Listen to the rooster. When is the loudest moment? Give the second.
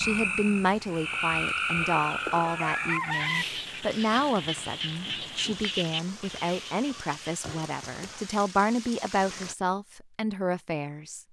3 s.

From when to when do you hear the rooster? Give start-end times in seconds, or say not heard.
1.6-3.5.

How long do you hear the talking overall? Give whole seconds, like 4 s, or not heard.
11 s.